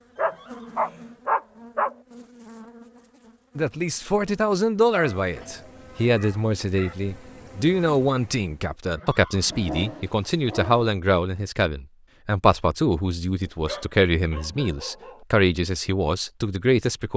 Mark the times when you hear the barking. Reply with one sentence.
The barking can be heard from 0.1 to 1.9 s, from 4.9 to 7.0 s, from 9.5 to 10.9 s and from 13.4 to 15.2 s.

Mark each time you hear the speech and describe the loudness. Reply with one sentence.
You can hear the speech from 3.5 to 17.1 s, at a steady volume.